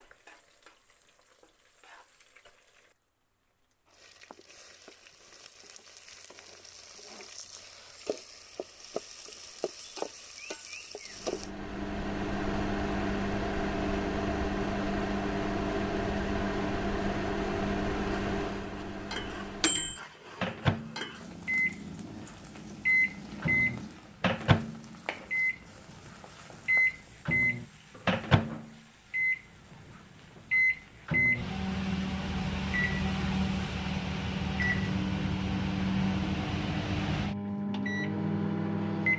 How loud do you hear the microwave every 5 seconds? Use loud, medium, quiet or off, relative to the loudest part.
off, off, loud, loud, loud, loud, loud, loud.